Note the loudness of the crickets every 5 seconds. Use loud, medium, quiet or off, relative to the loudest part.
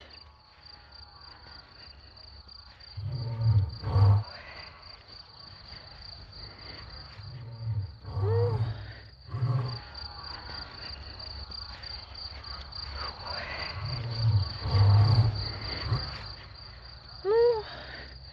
quiet, medium, medium, loud.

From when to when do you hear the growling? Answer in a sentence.
The growling can be heard from 3.0 to 4.2 s, from 7.2 to 9.8 s and from 13.8 to 16.0 s.